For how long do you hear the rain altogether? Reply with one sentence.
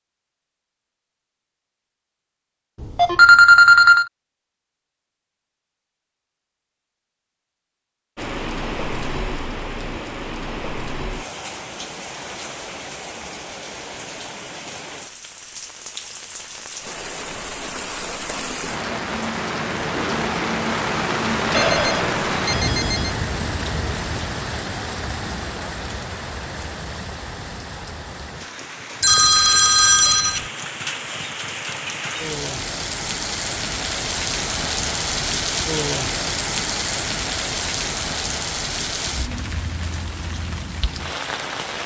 You can hear the rain for 34 seconds altogether.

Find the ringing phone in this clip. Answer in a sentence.
The ringing phone can be heard from 2.8 to 4.0 s, from 21.5 to 23.1 s and from 29.0 to 30.4 s.